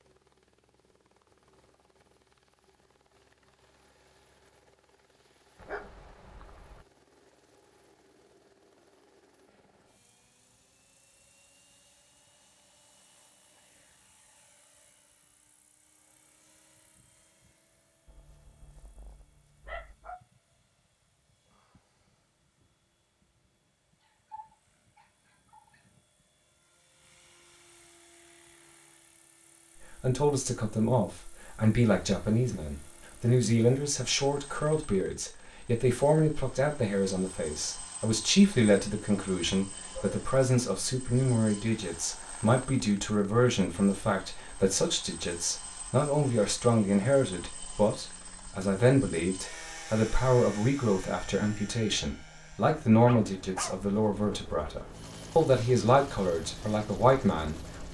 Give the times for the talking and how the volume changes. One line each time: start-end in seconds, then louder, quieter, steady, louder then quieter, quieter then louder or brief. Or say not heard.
30.0-57.9 steady.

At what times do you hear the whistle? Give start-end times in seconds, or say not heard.
not heard.